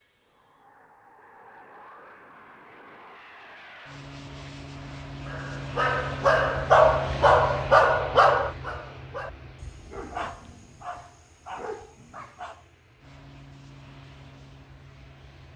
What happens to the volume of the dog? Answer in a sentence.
The loudness of the dog goes down.